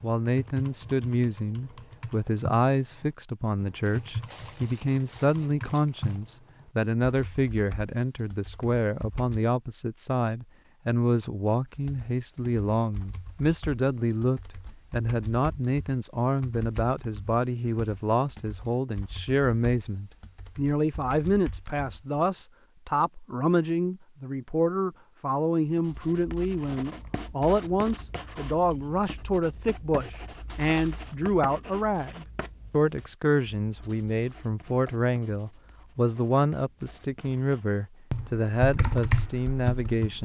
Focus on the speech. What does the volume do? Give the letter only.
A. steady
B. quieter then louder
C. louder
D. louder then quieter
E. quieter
A.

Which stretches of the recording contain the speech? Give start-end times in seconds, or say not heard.
0.0-40.1.